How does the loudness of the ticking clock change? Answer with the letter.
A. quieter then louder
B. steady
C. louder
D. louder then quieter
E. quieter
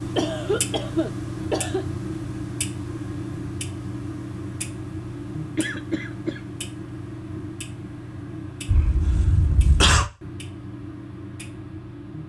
E.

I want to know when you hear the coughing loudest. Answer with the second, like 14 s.
10 s.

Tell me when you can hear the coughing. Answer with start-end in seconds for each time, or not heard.
0.1-1.9, 5.5-6.4, 8.7-10.1.